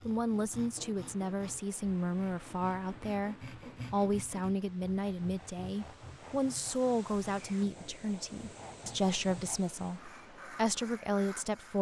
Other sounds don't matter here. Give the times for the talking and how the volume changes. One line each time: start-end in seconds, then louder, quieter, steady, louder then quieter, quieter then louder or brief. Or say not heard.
0.1-11.7 steady.